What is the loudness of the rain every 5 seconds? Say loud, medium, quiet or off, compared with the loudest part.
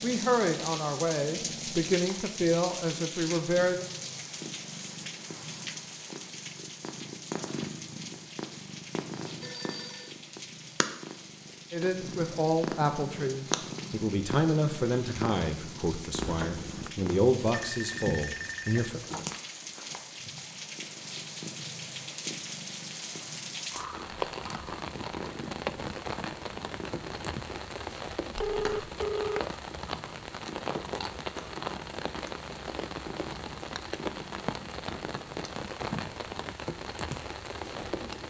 loud, medium, medium, medium, loud, loud, loud, loud.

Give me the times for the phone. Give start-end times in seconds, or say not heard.
9.4-10.2, 17.4-19.4, 28.4-29.5.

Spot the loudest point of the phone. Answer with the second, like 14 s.
29 s.